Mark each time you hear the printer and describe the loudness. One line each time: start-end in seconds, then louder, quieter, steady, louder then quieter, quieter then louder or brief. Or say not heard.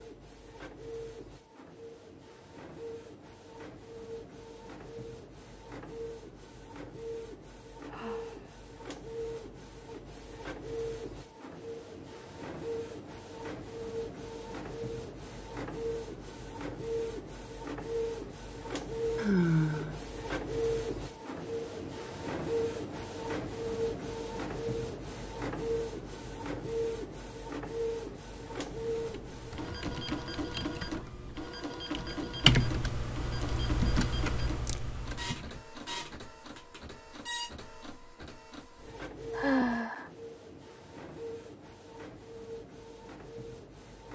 0.0-44.1 louder then quieter.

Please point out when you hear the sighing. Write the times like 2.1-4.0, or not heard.
7.8-8.6, 19.1-20.0, 39.3-40.1.